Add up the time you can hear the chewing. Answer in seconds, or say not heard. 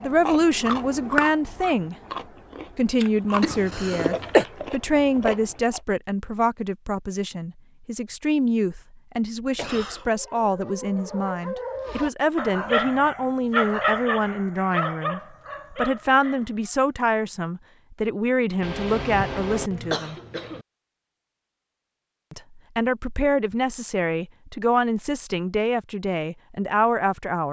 6 s.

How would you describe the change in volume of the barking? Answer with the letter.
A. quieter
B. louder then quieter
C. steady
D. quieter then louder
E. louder
B.